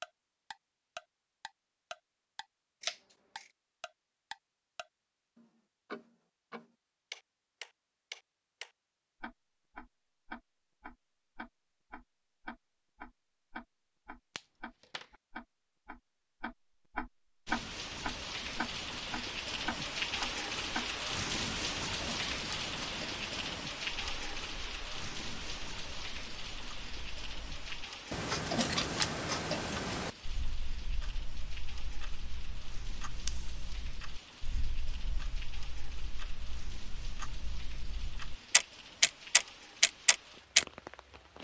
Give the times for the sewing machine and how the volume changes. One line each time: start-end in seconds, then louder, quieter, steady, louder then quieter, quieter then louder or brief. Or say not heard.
not heard.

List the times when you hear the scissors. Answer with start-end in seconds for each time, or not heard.
2.8-3.5, 14.3-15.1, 33.2-33.8.